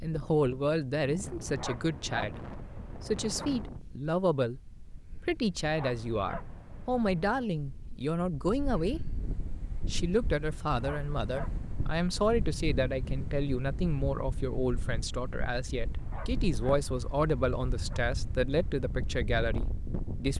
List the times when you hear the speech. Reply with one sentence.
You can hear the speech from 0.0 to 20.3 s.